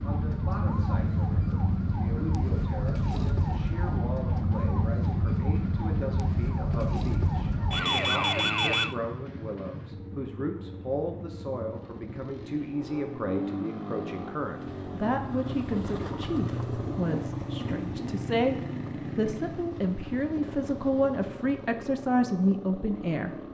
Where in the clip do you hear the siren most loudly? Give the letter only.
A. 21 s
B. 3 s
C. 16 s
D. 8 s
D.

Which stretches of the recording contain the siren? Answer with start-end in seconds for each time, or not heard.
0.0-8.9.